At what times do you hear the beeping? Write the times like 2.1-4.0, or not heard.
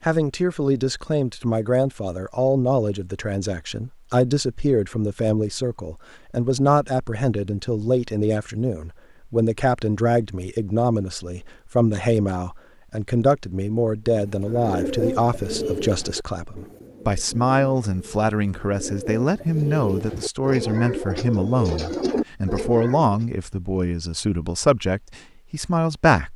not heard.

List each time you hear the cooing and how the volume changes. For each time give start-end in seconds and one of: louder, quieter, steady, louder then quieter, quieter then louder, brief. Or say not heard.
14.1-23.2 quieter then louder.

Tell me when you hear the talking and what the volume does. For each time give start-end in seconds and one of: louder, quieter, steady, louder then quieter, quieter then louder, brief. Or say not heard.
0.0-26.3 steady.